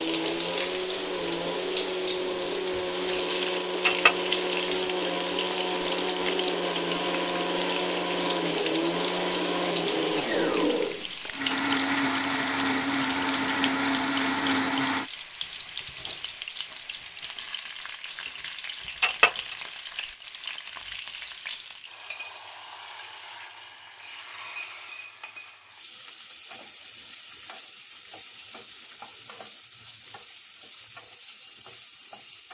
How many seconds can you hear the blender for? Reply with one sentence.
The blender can be heard for 15 seconds in total.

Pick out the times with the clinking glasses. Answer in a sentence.
You can hear the clinking glasses from 3.9 to 4.3 s and from 19.0 to 19.6 s.